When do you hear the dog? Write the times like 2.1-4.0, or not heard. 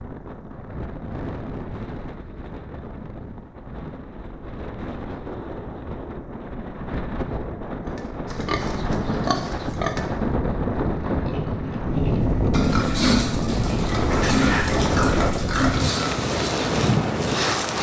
not heard.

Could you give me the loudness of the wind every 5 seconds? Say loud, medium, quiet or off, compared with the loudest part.
quiet, medium, loud, loud.